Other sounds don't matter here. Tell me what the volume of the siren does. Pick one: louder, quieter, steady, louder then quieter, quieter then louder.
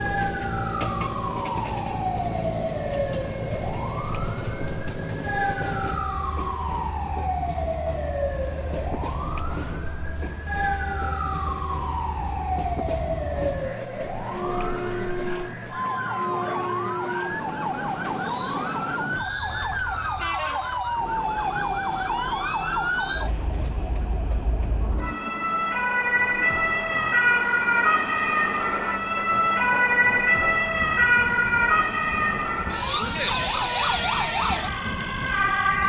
louder.